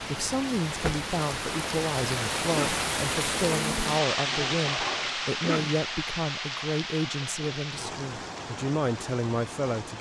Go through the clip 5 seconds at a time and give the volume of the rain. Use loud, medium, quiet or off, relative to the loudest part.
loud, medium.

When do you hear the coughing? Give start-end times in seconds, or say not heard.
2.4-2.9, 5.2-5.8.